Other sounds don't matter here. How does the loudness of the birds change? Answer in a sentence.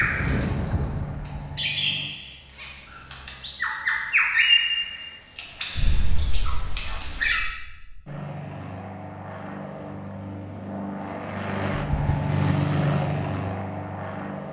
The volume of the birds goes up, then down.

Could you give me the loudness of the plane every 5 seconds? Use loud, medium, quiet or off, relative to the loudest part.
loud, medium, loud.